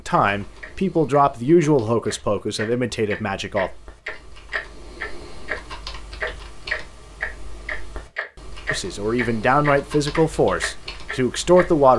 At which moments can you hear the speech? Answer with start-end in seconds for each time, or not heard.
0.1-3.7, 8.7-11.9.